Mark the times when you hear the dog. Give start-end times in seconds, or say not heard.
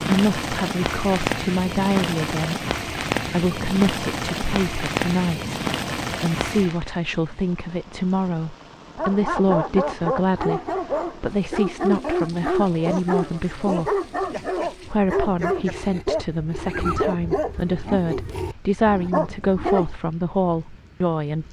8.9-19.9.